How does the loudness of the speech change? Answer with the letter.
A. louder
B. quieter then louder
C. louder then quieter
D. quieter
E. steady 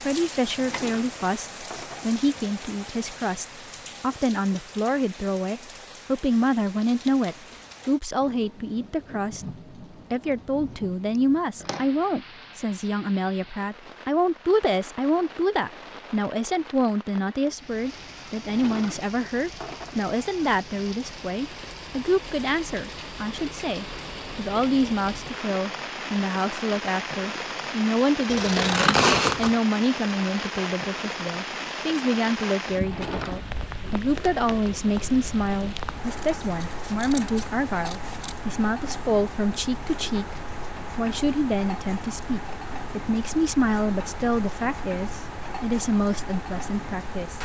E.